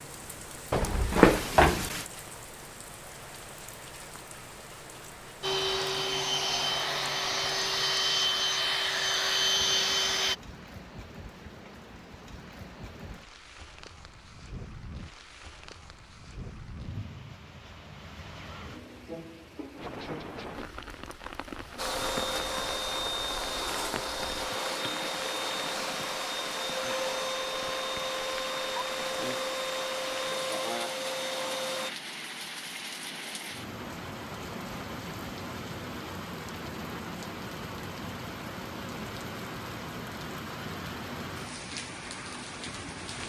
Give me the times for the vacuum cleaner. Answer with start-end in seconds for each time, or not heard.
5.4-10.3, 21.8-31.9.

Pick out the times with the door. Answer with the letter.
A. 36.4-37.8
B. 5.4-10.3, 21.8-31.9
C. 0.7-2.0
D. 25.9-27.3
C.